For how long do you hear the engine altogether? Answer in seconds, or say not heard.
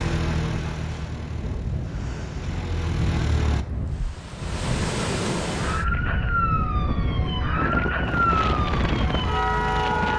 6 s.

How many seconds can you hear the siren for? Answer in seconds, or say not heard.
5 s.